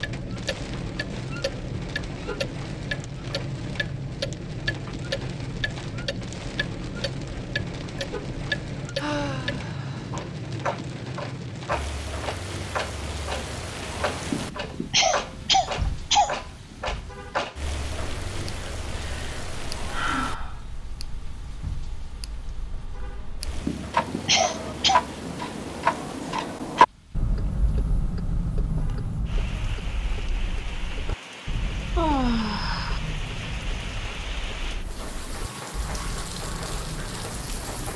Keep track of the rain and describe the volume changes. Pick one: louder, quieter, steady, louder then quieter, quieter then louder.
quieter then louder.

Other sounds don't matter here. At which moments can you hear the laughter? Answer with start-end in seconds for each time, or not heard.
14.2-16.4, 23.6-25.0.